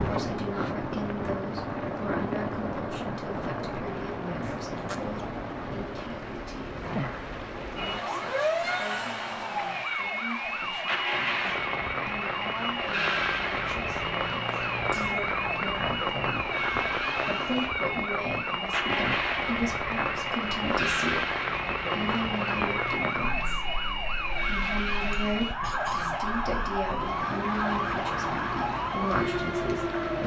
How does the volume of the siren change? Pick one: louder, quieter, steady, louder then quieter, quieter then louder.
steady.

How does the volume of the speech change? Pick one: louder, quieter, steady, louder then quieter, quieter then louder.
quieter then louder.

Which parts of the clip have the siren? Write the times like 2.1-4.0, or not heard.
7.8-30.2.